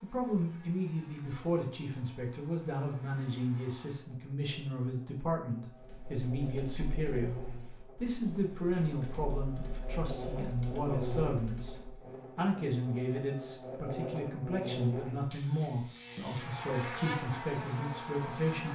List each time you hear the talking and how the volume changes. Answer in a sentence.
The talking can be heard from 0.0 to 18.7 s, at a steady volume.